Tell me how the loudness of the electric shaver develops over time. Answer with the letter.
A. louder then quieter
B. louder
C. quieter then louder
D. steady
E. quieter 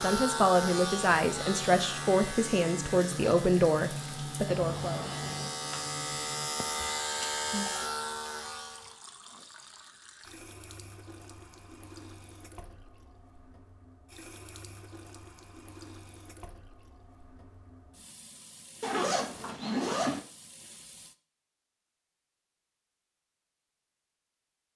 C.